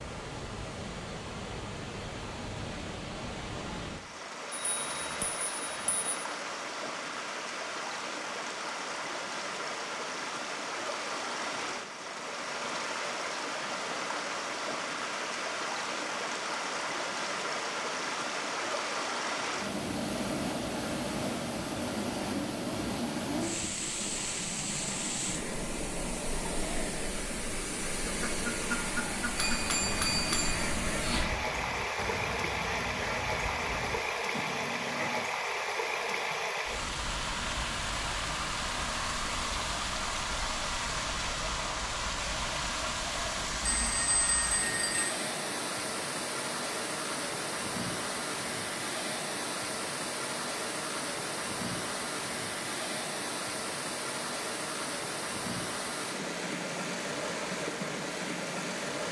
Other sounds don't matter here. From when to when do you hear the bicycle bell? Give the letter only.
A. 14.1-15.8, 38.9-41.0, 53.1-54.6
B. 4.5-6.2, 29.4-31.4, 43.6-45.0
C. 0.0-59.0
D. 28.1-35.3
B.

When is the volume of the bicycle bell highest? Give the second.
30 s.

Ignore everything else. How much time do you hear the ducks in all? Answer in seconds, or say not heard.
7 s.